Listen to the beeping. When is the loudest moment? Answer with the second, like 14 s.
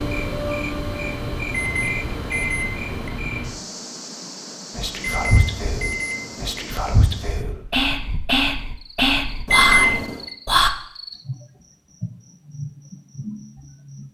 10 s.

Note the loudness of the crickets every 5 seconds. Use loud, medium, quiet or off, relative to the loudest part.
loud, medium, medium.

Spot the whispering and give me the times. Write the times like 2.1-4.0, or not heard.
4.8-10.7.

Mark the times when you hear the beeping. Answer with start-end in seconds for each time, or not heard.
1.5-3.1, 5.0-6.6, 9.4-10.2.